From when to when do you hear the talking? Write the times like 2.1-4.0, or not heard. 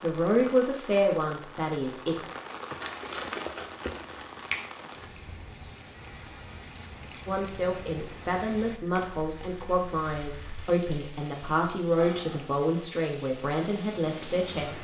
0.0-2.3, 7.2-14.7.